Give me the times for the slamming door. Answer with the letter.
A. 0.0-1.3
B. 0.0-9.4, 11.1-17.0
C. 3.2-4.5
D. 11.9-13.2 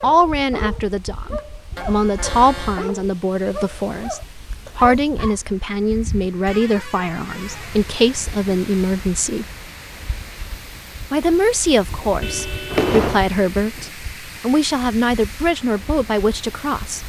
D.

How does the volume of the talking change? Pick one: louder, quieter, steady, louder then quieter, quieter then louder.
steady.